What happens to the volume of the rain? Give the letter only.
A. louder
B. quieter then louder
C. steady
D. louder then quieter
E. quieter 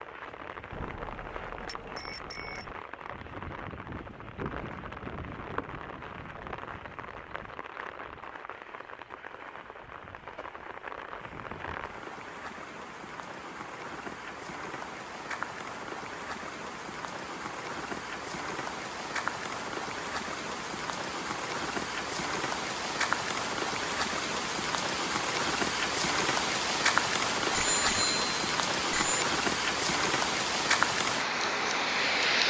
A.